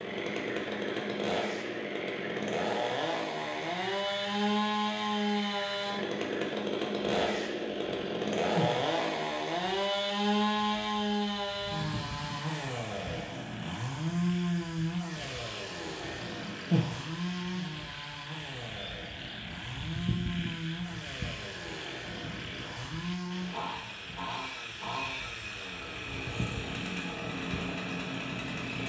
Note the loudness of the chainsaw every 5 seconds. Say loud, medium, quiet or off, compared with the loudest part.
loud, loud, loud, medium, medium, medium.